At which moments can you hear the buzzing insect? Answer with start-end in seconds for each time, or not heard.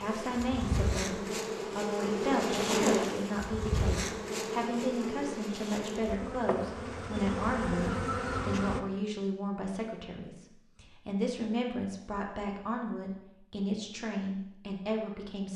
0.0-8.8.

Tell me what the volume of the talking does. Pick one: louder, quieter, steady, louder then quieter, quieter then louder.
steady.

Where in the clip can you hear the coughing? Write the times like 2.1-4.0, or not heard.
not heard.